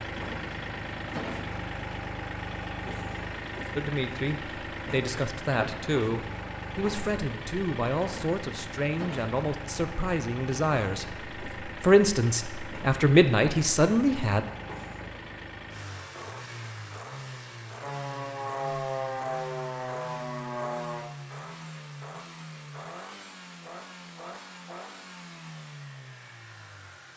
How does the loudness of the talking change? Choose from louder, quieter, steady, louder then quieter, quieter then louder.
louder.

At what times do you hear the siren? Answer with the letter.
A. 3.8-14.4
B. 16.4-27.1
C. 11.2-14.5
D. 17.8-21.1
D.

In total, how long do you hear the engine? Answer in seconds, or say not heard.
27 s.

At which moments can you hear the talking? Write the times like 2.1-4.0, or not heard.
3.8-14.4.